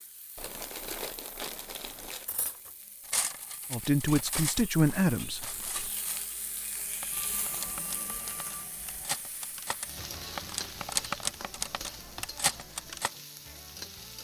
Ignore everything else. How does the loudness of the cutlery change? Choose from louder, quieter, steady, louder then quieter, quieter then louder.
quieter then louder.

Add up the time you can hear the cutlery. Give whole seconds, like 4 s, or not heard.
11 s.